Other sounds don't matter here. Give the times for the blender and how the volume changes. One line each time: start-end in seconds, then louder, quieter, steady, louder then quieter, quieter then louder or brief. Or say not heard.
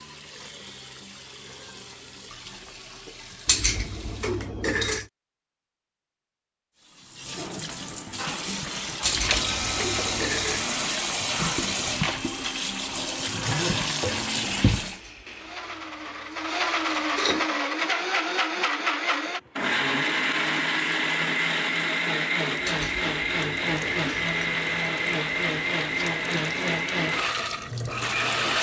8.2-28.5 louder.